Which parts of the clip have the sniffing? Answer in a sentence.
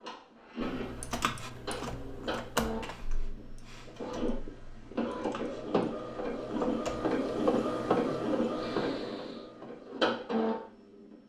The sniffing can be heard from 8.1 to 9.5 s.